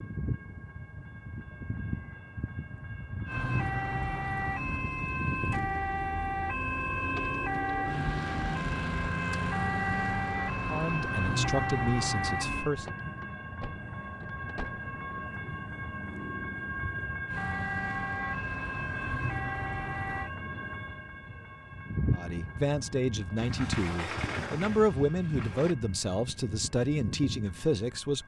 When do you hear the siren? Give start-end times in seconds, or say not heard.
3.2-12.7, 17.2-20.3.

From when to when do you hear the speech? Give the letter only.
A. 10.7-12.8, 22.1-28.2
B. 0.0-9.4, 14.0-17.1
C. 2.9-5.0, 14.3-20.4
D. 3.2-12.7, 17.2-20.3
A.